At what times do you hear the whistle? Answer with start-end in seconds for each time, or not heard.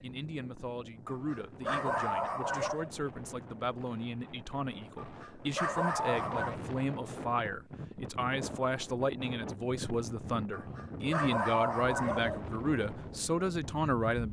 not heard.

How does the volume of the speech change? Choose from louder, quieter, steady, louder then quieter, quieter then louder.
louder.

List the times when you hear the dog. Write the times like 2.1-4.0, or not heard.
1.1-2.9, 5.0-6.5, 10.5-12.4.